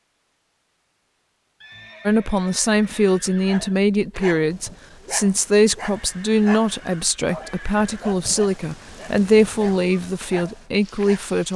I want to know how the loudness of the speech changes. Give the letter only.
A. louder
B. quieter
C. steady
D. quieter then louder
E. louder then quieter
C.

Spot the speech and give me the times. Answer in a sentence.
You can hear the speech from 2.0 to 11.5 s.